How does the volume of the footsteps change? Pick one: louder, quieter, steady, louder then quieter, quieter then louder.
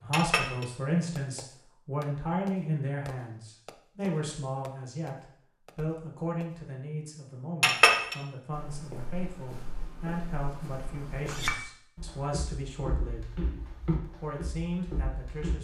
louder.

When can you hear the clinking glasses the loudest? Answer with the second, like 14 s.
8 s.